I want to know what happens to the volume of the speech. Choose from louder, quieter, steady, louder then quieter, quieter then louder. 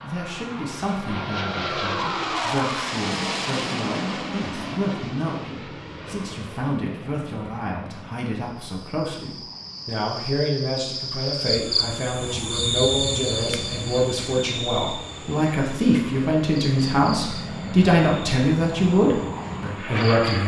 louder.